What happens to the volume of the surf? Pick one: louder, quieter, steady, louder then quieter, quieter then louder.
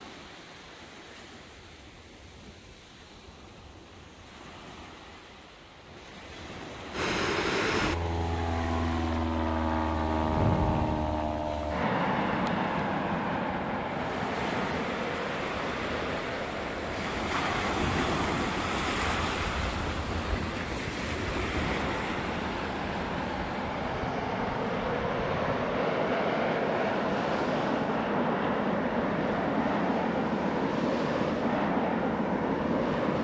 louder then quieter.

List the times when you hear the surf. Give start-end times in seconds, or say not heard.
0.0-33.1.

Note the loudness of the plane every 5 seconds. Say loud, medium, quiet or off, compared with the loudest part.
off, loud, loud, medium, medium, loud, loud.